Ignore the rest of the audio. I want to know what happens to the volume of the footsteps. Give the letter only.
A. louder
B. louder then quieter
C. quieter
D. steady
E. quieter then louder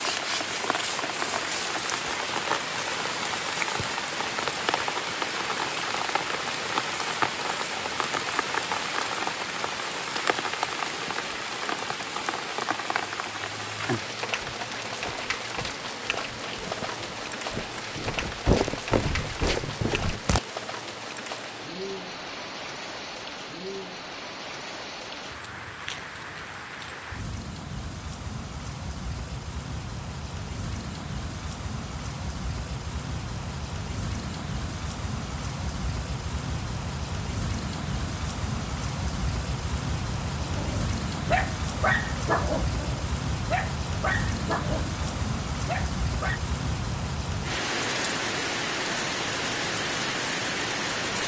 A.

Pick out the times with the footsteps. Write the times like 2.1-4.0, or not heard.
13.0-20.4.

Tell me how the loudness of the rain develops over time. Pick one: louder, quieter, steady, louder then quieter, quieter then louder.
quieter then louder.